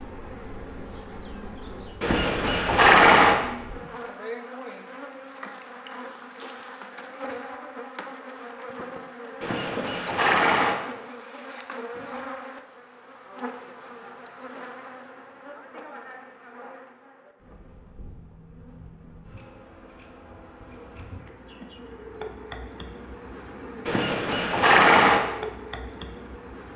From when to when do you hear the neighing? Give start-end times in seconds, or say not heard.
2.0-3.4, 9.4-10.8, 23.9-25.2.